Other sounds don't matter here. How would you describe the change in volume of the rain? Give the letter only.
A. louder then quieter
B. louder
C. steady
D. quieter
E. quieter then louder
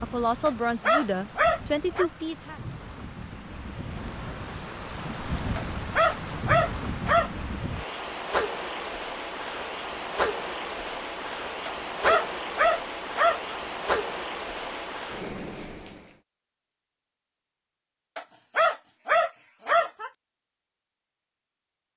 B.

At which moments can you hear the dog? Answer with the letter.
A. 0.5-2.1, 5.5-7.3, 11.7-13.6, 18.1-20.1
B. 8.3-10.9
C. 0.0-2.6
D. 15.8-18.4
A.